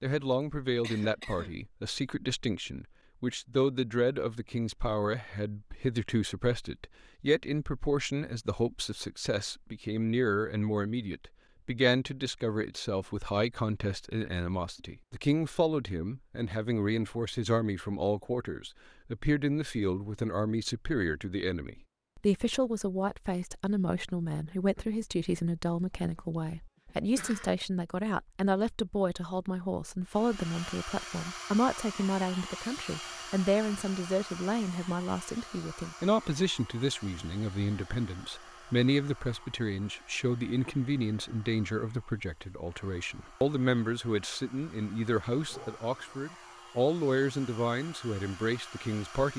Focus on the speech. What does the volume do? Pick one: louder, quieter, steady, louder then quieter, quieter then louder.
steady.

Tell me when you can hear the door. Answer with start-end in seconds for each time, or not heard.
not heard.